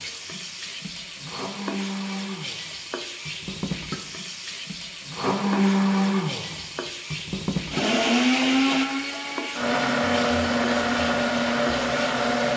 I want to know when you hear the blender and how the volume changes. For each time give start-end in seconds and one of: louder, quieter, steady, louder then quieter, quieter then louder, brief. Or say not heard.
0.0-12.5 louder.